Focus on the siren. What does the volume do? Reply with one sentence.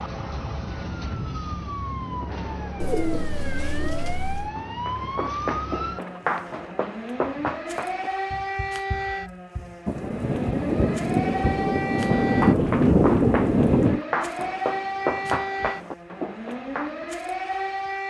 The volume of the siren stays about the same.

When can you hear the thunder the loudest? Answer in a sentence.
The volume of the thunder peaks at 13 seconds.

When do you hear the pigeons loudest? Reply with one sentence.
The volume of the pigeons peaks at 3 seconds.